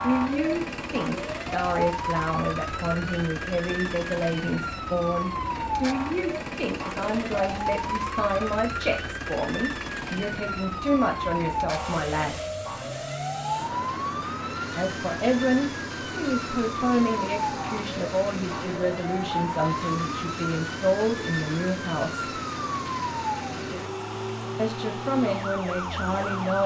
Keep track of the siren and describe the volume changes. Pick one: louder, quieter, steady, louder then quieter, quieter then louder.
steady.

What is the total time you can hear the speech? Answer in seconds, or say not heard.
22 s.